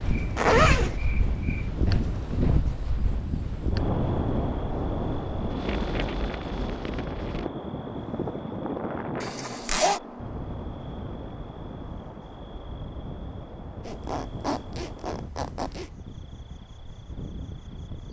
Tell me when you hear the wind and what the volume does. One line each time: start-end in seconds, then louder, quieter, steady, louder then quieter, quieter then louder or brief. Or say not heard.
0.0-18.0 quieter.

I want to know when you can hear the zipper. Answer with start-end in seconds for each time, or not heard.
0.3-1.0, 9.2-10.0, 13.8-15.9.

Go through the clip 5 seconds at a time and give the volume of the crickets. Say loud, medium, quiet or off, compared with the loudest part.
loud, loud, medium, quiet.